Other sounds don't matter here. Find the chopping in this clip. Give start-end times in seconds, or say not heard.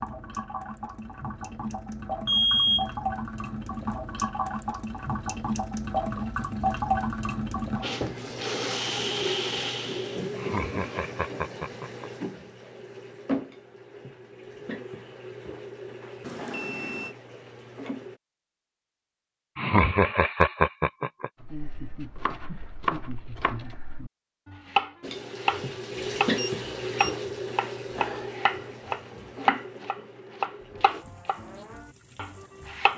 21.4-32.9.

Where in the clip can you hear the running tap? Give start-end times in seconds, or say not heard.
0.0-18.2, 25.0-32.9.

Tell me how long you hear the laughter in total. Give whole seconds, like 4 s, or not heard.
4 s.